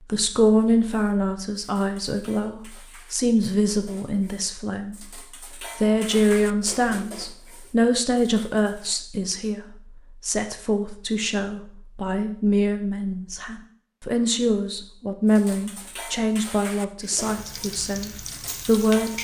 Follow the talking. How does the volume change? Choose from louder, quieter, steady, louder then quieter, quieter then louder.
steady.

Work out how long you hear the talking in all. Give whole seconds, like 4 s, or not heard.
19 s.